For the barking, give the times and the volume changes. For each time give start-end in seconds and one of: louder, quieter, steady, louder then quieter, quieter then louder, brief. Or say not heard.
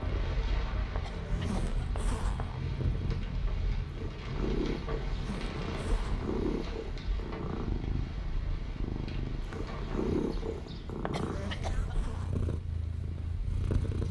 not heard.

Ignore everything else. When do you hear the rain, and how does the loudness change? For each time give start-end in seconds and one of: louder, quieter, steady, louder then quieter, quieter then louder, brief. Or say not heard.
0.0-14.0 quieter.